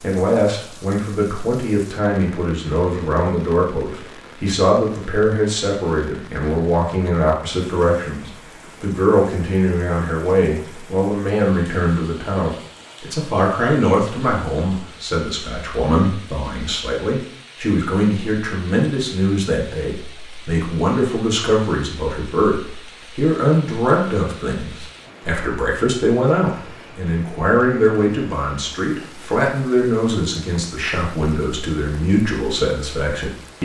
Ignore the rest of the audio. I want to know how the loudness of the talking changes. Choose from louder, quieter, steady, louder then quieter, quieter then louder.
steady.